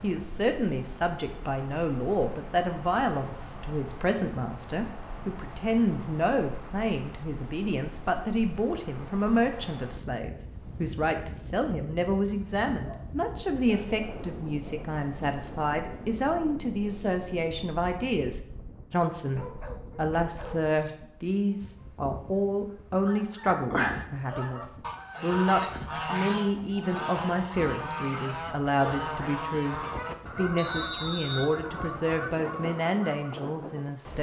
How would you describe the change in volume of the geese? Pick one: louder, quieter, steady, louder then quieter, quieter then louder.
quieter.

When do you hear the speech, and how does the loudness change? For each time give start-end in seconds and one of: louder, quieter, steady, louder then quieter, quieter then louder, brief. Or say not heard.
0.0-34.1 steady.